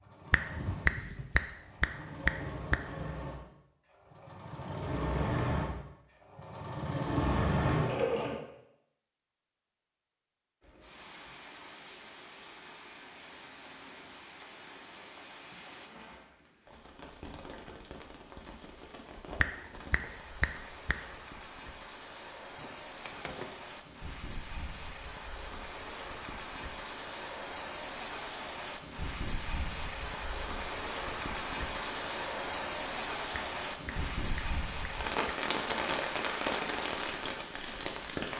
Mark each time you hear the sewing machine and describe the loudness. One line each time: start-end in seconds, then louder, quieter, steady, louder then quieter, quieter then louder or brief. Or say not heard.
0.0-8.4 louder.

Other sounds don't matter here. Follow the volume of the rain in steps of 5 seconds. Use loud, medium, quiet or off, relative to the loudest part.
off, off, quiet, quiet, medium, medium, loud, loud.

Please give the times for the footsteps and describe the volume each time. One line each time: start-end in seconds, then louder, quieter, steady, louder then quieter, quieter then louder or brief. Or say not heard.
not heard.